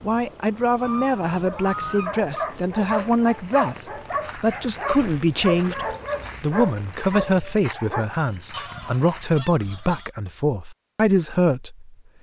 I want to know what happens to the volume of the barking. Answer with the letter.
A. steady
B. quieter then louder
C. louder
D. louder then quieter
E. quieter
A.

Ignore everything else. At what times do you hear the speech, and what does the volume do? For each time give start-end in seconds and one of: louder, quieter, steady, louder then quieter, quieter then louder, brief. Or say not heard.
0.0-11.9 steady.